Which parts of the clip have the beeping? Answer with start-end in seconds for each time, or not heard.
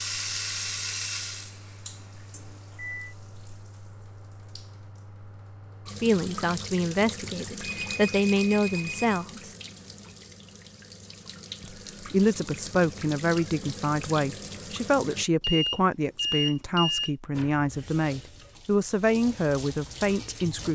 2.3-3.1, 7.6-9.2, 15.4-17.1.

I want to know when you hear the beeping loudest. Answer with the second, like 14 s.
16 s.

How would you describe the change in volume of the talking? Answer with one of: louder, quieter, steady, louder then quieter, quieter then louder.
steady.